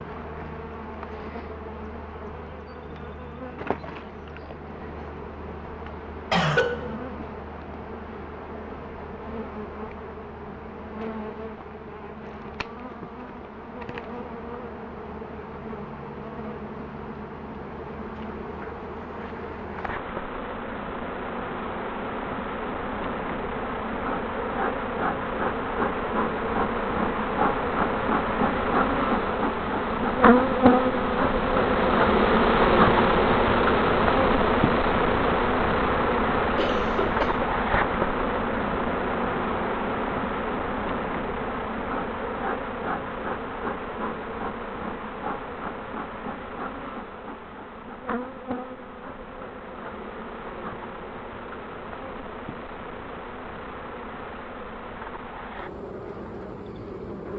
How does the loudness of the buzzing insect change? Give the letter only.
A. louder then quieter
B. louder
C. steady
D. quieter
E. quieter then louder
A.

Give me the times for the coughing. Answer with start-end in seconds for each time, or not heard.
6.3-7.0, 36.5-37.5.